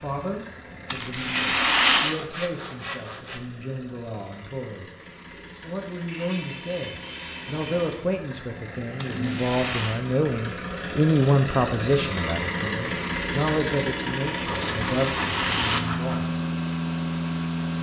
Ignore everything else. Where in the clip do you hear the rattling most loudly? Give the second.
2 s.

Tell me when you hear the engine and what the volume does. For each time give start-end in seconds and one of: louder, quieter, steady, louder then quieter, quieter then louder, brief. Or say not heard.
0.0-17.7 louder.